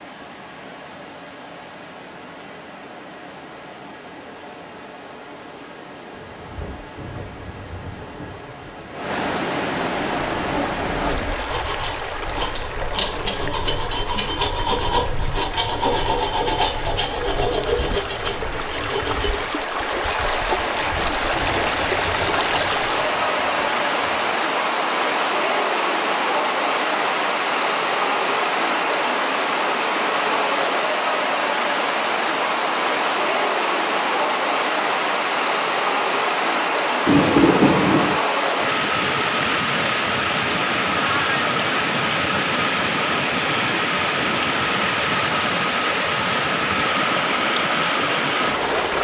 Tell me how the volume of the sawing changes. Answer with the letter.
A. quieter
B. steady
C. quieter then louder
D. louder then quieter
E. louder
D.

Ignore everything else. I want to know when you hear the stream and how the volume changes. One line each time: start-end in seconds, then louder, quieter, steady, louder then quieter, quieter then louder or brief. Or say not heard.
0.0-48.9 louder.